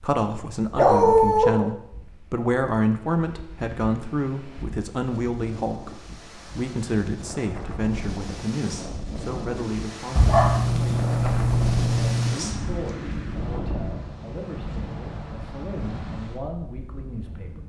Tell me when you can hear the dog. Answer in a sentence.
You can hear the dog from 0.8 to 1.6 s and from 10.2 to 12.3 s.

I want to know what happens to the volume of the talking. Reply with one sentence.
The loudness of the talking goes down.